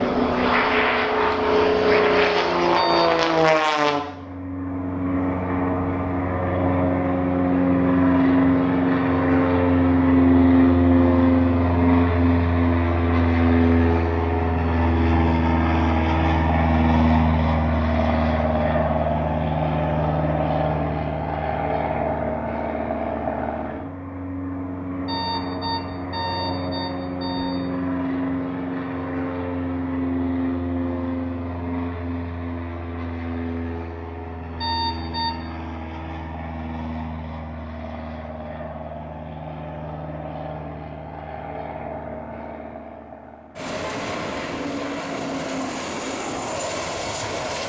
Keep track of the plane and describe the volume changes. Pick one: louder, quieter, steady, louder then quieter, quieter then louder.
quieter.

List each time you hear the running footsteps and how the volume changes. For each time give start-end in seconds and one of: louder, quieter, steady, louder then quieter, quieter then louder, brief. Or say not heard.
not heard.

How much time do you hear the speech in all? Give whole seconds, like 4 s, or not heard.
not heard.